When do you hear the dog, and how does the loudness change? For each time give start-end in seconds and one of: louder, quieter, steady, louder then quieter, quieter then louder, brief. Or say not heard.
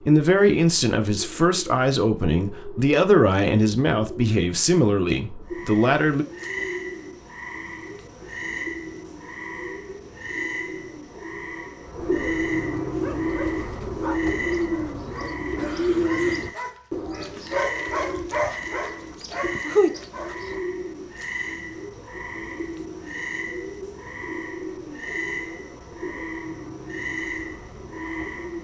12.9-20.5 quieter then louder.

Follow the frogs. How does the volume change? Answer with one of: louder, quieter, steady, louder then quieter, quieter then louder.
steady.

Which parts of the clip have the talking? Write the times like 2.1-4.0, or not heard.
0.0-6.2.